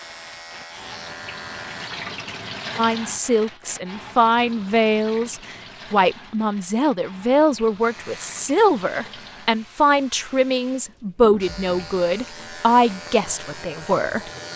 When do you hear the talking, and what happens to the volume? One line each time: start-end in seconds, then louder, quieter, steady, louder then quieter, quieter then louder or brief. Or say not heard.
2.8-14.3 steady.